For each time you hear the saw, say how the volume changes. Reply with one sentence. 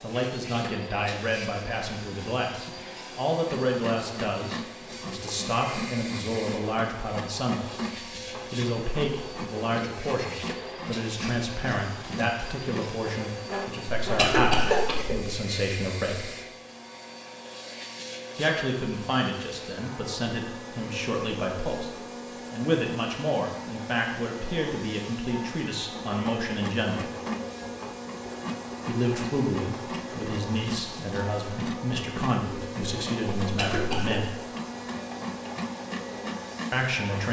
The saw can be heard from 3.4 to 14.9 s, at a steady volume; and from 25.9 to 37.2 s, at a steady volume.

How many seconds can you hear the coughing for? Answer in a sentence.
The coughing can be heard for 2 seconds in total.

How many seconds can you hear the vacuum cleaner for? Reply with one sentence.
You can hear the vacuum cleaner for 37 seconds altogether.